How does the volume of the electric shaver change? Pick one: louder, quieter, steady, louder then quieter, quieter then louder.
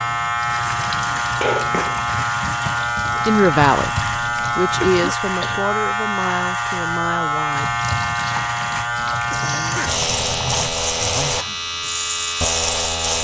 steady.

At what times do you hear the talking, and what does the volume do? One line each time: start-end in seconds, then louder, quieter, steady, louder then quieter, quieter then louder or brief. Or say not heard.
3.1-7.8 quieter.